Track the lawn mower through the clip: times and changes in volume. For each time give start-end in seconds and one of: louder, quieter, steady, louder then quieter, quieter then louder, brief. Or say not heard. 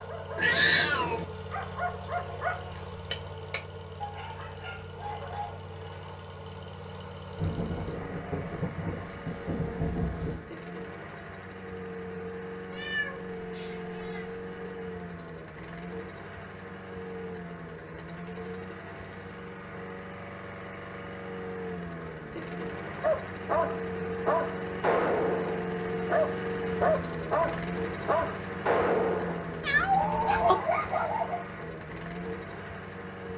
0.0-33.3 louder.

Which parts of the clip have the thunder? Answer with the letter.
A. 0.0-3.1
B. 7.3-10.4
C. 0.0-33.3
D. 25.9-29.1
B.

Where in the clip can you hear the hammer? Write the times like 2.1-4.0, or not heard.
not heard.